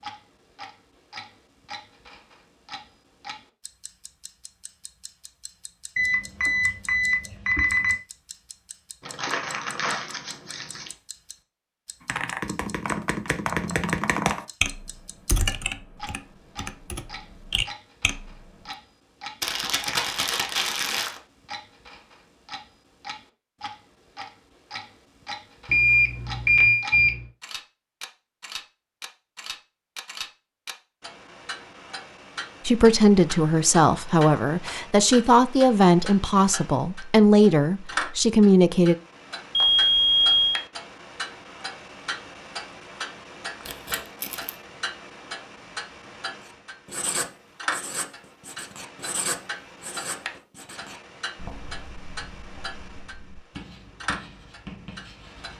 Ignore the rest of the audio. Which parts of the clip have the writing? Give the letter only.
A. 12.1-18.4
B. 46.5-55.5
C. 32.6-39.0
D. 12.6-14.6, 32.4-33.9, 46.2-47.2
B.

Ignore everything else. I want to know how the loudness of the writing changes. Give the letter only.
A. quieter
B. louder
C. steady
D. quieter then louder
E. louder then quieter
D.